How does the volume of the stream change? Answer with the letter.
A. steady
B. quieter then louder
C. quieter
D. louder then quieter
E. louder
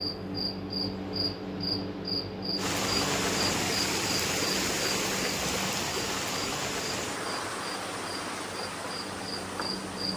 C.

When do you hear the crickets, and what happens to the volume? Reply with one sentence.
The crickets can be heard from 0.0 to 10.1 s, getting quieter.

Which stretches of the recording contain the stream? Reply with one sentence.
You can hear the stream from 2.5 to 10.1 s.